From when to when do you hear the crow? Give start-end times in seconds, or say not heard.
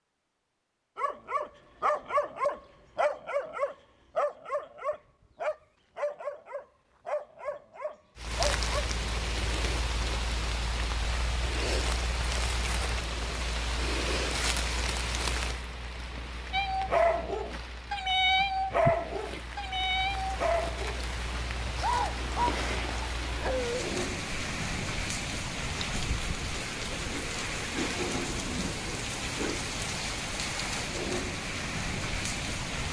not heard.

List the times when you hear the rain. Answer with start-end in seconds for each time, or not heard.
8.2-32.8.